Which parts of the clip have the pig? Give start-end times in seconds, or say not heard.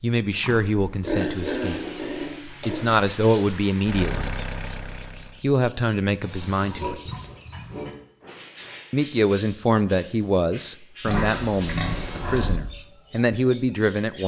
0.4-3.0, 6.2-8.0, 11.1-12.6.